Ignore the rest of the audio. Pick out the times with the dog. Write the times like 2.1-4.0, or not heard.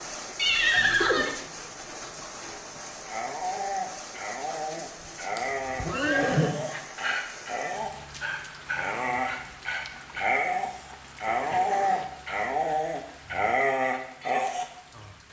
3.0-14.7.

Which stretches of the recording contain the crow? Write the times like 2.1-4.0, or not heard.
not heard.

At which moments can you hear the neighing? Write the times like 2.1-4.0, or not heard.
0.3-1.4, 5.3-6.5, 11.2-12.1.